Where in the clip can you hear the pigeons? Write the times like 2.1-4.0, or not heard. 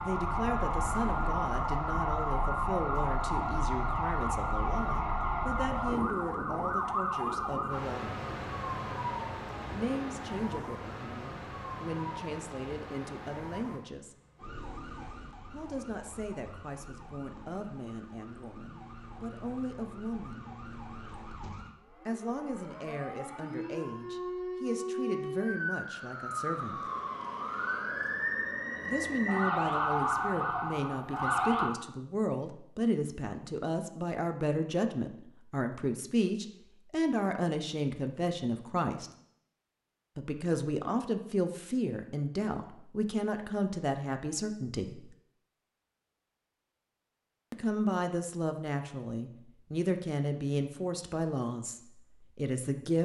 not heard.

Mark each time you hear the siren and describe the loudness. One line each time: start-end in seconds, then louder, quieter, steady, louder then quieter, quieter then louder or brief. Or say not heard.
0.0-31.7 quieter then louder.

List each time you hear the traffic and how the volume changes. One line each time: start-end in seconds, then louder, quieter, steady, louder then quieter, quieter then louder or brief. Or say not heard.
not heard.